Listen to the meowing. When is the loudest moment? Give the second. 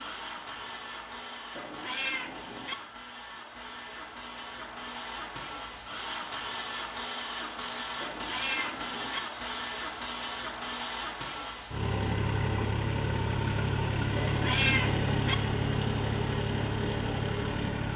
15 s.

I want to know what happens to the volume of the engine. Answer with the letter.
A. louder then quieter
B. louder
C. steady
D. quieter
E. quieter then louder
B.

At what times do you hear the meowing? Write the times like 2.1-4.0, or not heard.
1.6-2.8, 8.0-9.2, 14.2-15.3.